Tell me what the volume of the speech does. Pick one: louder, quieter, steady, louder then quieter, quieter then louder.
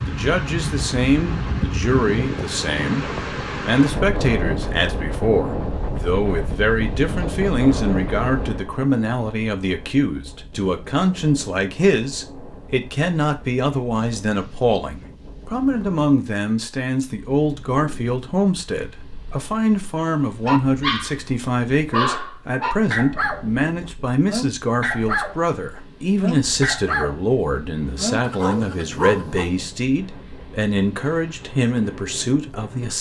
steady.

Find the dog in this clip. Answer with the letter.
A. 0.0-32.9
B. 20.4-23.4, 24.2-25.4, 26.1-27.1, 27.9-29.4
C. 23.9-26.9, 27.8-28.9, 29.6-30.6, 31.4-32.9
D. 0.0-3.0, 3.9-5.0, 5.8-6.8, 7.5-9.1
B.